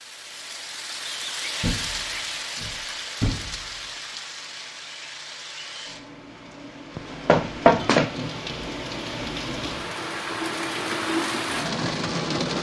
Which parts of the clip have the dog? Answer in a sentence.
You can't hear the dog here.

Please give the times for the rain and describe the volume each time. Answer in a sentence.
You can hear the rain from 0.0 to 12.5 s, getting quieter then louder.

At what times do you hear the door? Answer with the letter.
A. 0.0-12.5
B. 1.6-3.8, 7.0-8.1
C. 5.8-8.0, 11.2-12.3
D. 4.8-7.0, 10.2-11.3
B.